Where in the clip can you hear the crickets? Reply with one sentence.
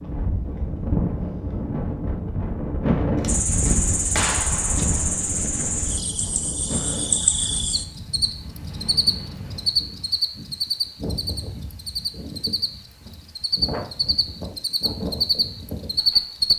The crickets can be heard from 3.2 to 16.5 s.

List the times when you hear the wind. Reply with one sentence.
You can hear the wind from 0.0 to 16.5 s.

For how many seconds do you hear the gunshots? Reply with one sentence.
The gunshots can be heard for 2 seconds in total.